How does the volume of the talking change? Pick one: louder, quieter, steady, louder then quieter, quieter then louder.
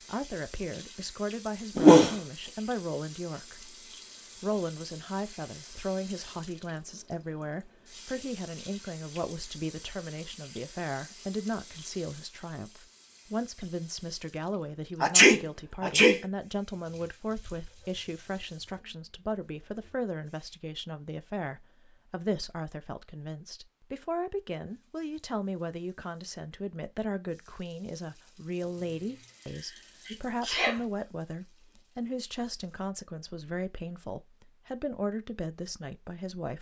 steady.